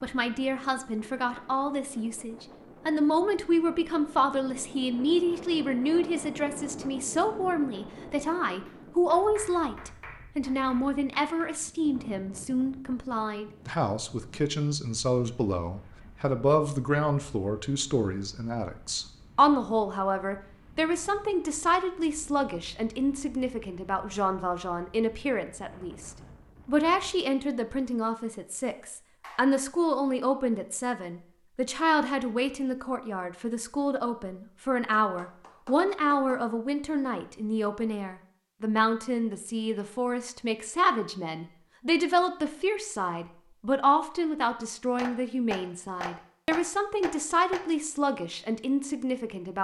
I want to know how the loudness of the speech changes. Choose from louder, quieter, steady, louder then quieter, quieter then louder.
steady.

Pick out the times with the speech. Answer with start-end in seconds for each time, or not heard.
0.0-49.6.